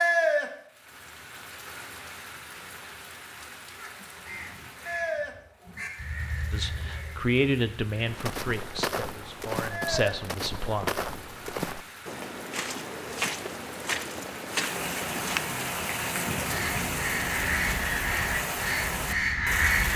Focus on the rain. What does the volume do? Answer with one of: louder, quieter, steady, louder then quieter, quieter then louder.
louder.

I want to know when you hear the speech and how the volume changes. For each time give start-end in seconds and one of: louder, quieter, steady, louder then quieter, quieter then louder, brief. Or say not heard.
6.5-11.0 quieter then louder.